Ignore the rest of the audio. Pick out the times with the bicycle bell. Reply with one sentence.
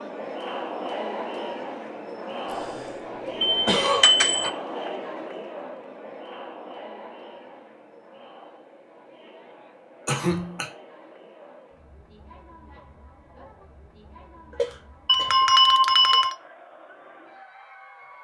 The bicycle bell can be heard from 3.4 to 4.5 s and from 15.1 to 16.4 s.